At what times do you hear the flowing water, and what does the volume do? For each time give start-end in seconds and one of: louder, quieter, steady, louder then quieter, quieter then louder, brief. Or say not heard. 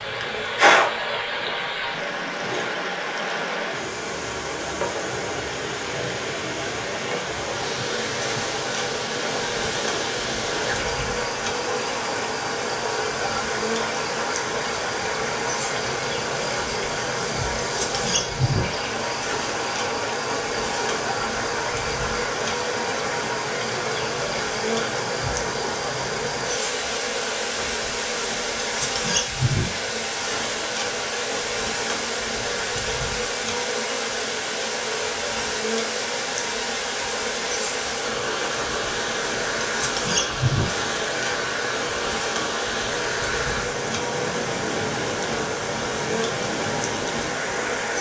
0.0-47.9 steady.